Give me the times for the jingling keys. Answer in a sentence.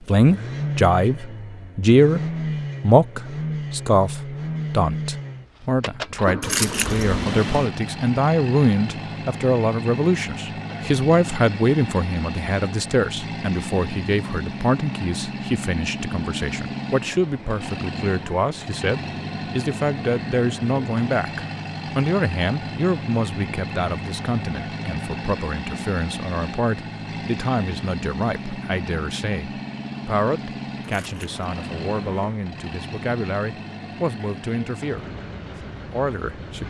The jingling keys can be heard from 6.4 to 7.7 s and from 30.8 to 32.4 s.